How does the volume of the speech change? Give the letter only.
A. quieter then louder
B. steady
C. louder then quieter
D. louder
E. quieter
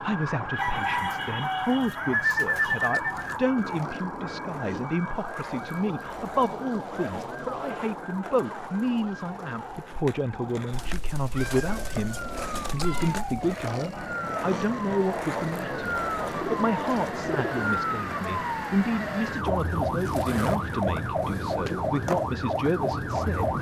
B.